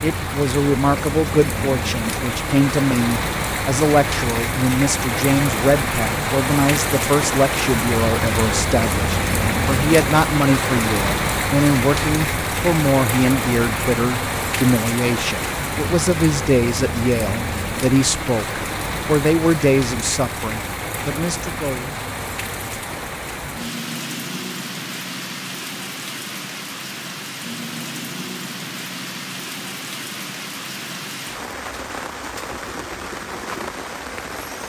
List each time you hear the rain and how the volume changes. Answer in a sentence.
The rain can be heard from 0.0 to 34.6 s, getting quieter.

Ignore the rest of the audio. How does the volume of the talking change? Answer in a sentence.
The volume of the talking stays about the same.